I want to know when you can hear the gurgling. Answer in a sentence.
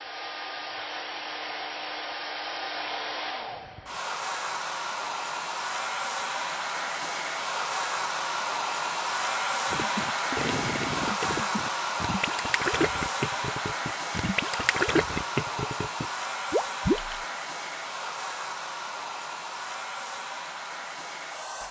You can hear the gurgling from 9.7 to 17.2 s.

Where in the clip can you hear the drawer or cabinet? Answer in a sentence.
The drawer or cabinet can't be heard in this clip.